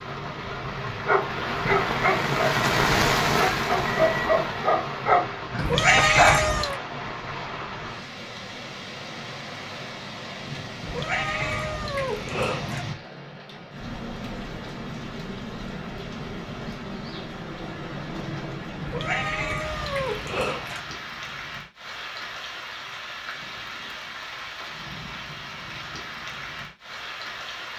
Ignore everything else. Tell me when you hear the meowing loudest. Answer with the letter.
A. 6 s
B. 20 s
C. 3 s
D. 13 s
A.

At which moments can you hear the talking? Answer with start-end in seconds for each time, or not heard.
not heard.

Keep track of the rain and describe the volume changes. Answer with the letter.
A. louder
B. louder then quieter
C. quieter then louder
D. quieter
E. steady
D.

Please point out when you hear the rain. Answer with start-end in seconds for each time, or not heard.
0.0-27.7.